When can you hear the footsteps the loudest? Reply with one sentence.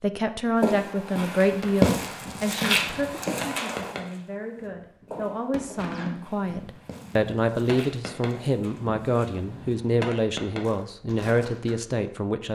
The volume of the footsteps peaks at 2 seconds.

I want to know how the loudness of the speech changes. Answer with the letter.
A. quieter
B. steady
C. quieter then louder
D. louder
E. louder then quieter
C.